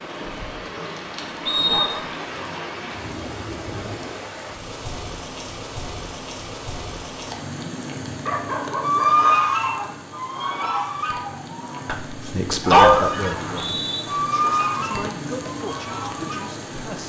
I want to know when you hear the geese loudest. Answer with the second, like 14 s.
9 s.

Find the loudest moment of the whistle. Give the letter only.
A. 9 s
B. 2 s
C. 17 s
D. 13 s
B.